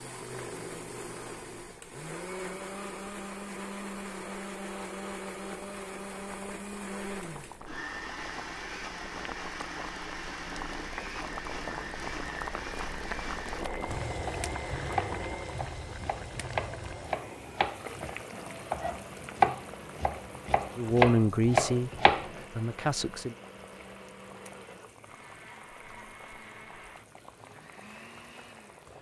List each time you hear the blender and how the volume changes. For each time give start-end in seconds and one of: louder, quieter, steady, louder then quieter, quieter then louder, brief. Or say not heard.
0.0-28.9 quieter.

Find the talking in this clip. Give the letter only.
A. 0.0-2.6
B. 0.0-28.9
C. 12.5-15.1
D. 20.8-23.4
D.